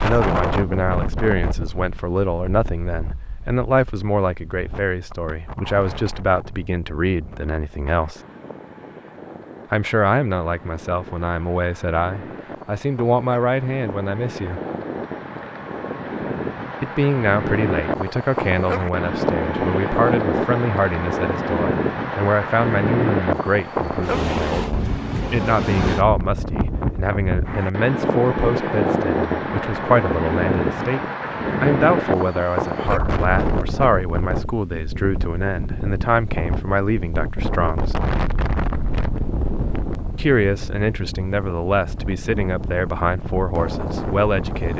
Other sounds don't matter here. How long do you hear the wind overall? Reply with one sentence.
The wind can be heard for 45 seconds in total.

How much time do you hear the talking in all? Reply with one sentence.
The talking can be heard for 39 seconds in total.